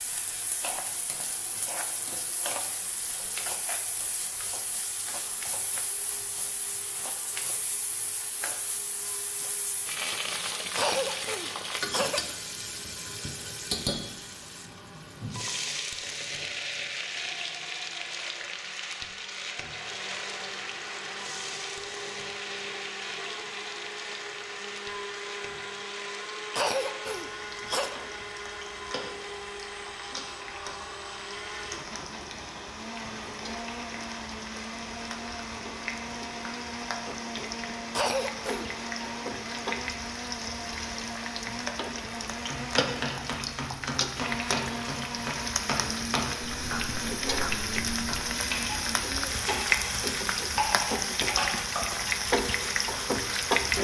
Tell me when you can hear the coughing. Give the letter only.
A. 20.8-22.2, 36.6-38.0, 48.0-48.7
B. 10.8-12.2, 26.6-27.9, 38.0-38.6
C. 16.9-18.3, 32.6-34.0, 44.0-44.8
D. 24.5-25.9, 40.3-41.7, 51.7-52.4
B.